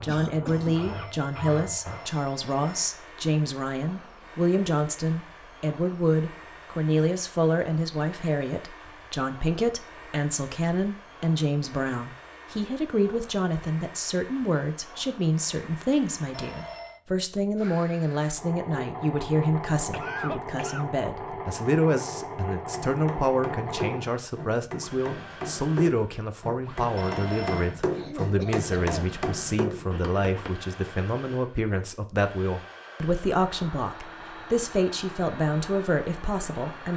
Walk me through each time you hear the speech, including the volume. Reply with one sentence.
You can hear the speech from 0.0 to 36.9 s, at a steady volume.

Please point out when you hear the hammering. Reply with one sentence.
You can hear the hammering from 22.7 to 30.6 s.